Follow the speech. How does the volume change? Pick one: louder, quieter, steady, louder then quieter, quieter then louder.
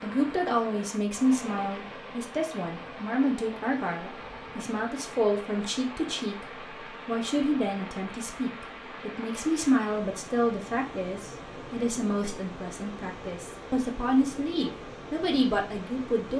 steady.